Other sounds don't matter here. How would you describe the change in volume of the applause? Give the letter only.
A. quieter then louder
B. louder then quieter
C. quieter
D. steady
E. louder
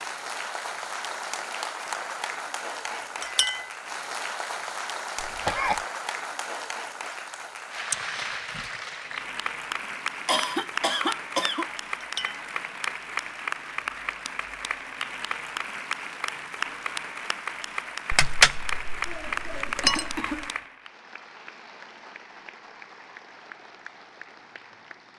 C.